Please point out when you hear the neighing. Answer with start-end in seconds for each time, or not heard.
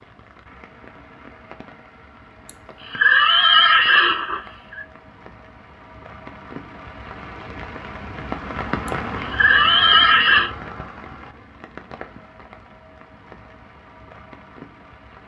2.5-4.8, 8.8-10.5.